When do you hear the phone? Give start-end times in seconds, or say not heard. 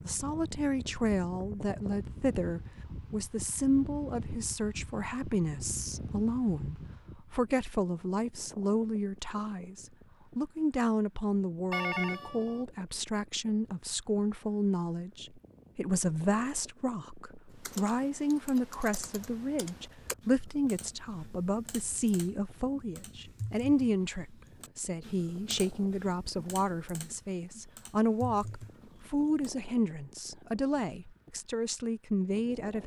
11.7-12.7.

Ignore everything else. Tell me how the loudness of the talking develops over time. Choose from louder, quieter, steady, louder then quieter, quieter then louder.
steady.